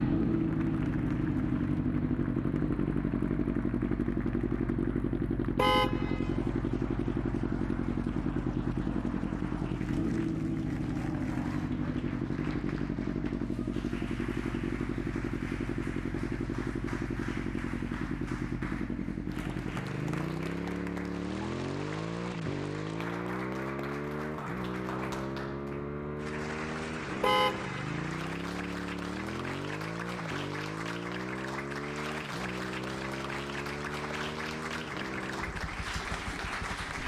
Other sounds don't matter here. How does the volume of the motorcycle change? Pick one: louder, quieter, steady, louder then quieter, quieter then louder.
quieter.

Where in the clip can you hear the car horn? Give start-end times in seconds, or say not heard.
5.5-6.4, 27.2-27.8.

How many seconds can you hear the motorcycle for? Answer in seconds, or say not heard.
37 s.